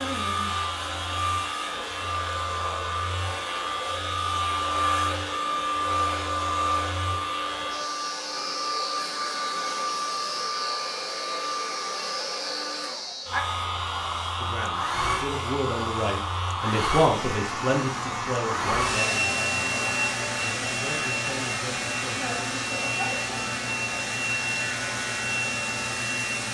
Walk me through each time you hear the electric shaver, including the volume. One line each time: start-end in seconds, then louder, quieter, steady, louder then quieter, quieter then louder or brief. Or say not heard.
0.0-26.4 steady.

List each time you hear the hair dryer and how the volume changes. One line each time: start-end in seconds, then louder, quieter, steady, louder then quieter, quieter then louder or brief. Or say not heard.
0.0-26.4 steady.